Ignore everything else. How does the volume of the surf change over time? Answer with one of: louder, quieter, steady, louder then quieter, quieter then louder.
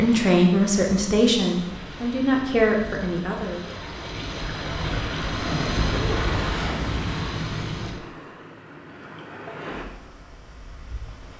louder then quieter.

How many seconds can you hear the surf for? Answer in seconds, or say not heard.
11 s.